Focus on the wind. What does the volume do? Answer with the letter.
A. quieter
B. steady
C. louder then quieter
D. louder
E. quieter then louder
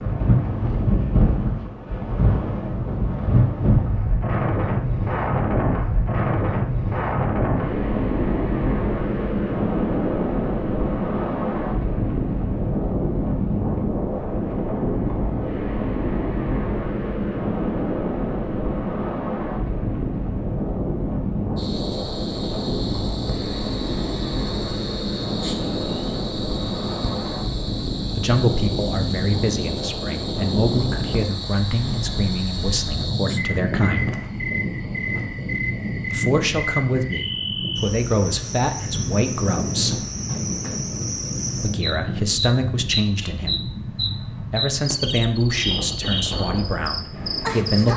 A.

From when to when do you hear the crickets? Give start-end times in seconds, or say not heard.
21.6-47.9.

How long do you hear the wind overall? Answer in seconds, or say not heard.
48 s.